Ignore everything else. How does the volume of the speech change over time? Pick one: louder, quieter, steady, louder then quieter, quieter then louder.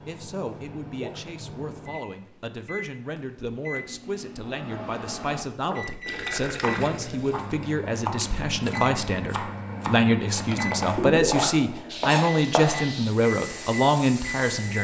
louder.